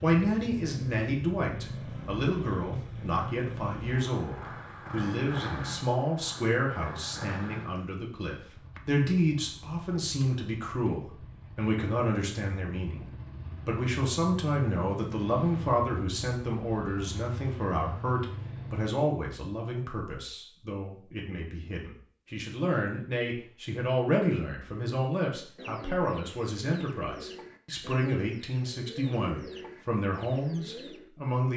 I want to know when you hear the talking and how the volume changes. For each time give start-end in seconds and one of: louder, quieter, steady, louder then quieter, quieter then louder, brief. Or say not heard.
0.0-13.1 steady
13.7-31.5 steady.